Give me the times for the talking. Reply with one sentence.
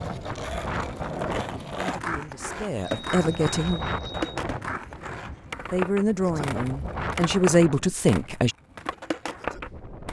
The talking can be heard from 1.8 to 3.9 s and from 5.7 to 8.6 s.